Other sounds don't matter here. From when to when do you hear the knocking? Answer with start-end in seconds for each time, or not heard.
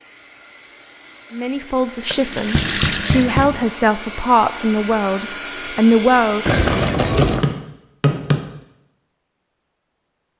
2.5-3.6, 7.2-8.5.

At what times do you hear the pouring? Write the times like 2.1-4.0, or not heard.
2.1-3.5, 6.5-7.5.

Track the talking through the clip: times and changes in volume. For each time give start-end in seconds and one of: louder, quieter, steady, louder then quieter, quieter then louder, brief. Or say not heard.
1.3-6.5 louder.